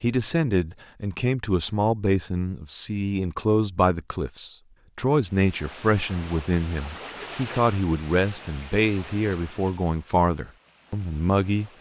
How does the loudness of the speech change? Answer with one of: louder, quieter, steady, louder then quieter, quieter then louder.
steady.